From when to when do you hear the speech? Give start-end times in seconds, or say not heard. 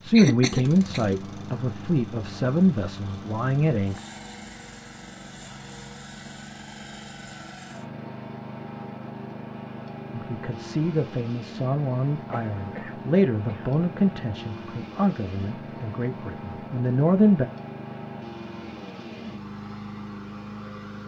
0.0-4.0, 10.1-17.5.